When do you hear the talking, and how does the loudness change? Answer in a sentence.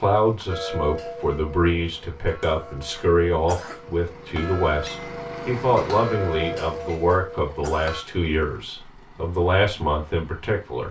The talking can be heard from 0.0 to 10.8 s, at a steady volume.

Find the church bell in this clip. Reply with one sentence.
You can hear the church bell from 0.5 to 8.1 s.